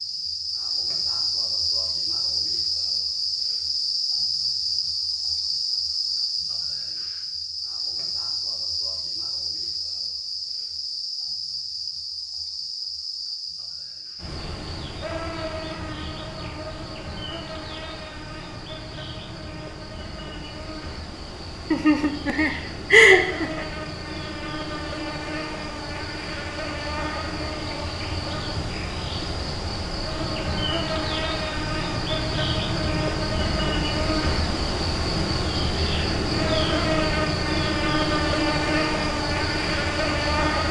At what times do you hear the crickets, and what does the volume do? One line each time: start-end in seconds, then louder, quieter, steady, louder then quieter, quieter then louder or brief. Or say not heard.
0.0-40.6 quieter then louder.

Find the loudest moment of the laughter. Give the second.
23 s.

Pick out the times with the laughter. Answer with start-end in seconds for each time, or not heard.
21.7-23.6.